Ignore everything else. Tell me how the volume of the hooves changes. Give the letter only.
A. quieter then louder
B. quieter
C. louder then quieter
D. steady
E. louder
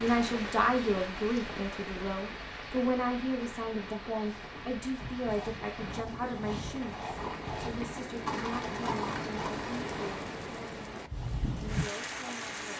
E.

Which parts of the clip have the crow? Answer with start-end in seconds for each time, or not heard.
not heard.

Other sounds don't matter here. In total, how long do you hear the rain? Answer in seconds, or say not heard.
13 s.